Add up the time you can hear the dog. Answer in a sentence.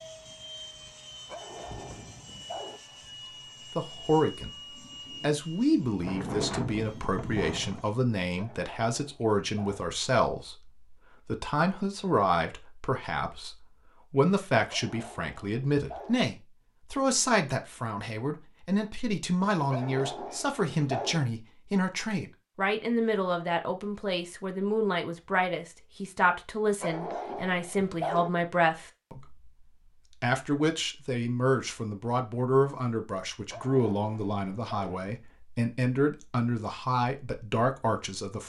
The dog can be heard for 9 seconds in total.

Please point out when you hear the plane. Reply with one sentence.
The plane can be heard from 0.0 to 8.0 s.